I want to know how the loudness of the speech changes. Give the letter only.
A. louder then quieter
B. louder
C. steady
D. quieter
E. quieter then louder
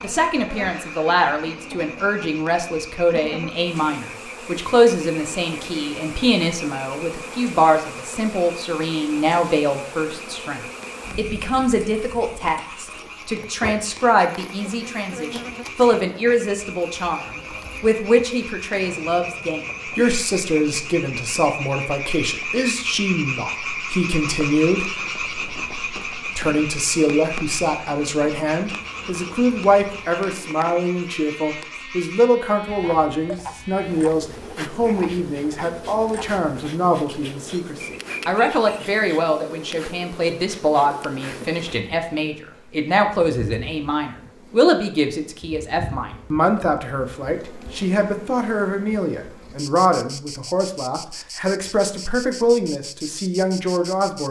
C.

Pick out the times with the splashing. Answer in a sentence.
The splashing can't be heard in this clip.